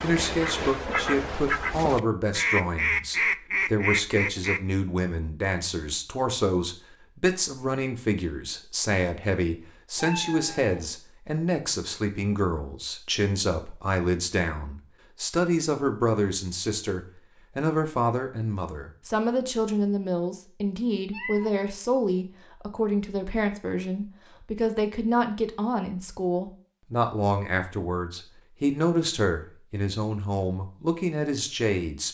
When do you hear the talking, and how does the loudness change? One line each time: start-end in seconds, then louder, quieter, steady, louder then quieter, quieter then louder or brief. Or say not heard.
0.0-32.1 steady.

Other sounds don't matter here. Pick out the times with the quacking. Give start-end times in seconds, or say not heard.
0.0-4.6.